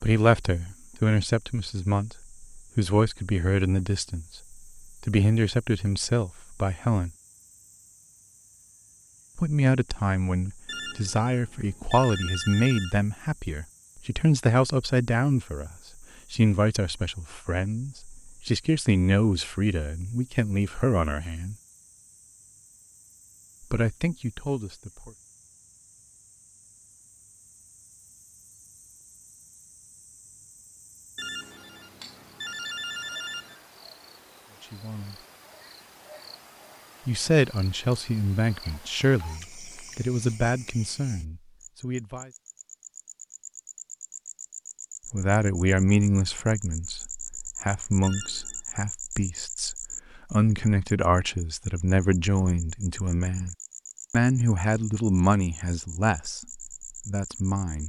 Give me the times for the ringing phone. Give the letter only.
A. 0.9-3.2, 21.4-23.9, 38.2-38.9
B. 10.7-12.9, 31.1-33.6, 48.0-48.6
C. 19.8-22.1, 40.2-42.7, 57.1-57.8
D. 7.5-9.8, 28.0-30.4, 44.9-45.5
B.